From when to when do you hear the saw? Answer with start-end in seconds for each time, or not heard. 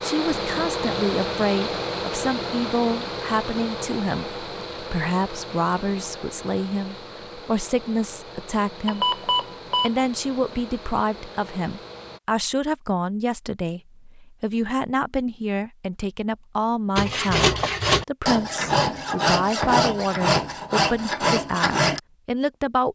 16.9-22.0.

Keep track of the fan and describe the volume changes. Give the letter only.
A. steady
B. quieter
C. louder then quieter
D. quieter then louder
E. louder
B.